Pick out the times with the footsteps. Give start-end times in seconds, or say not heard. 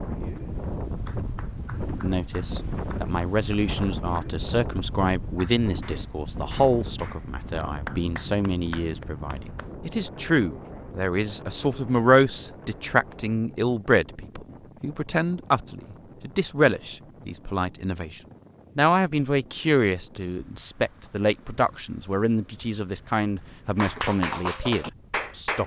not heard.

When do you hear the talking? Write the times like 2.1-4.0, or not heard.
2.0-25.6.